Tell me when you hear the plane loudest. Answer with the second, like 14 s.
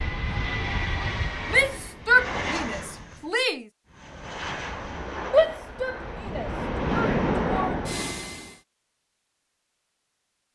7 s.